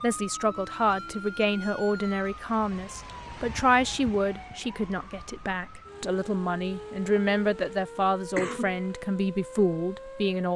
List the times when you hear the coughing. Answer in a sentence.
The coughing can be heard from 8.3 to 8.8 s.